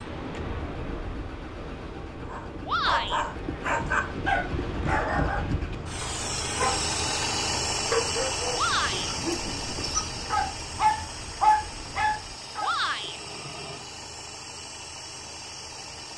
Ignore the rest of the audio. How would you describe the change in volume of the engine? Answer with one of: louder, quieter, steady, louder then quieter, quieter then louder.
louder then quieter.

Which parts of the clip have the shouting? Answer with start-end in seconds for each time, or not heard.
2.6-3.2, 8.6-9.1, 12.6-13.2.